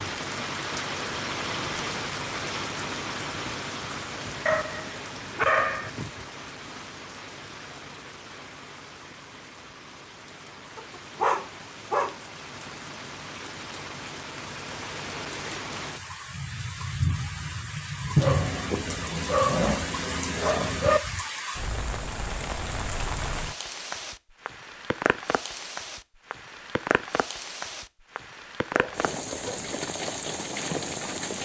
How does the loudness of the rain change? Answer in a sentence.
The loudness of the rain goes down, then up.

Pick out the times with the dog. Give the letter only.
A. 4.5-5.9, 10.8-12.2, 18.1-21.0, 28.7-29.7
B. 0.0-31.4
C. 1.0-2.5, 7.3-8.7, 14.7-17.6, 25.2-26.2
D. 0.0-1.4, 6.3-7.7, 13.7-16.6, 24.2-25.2
A.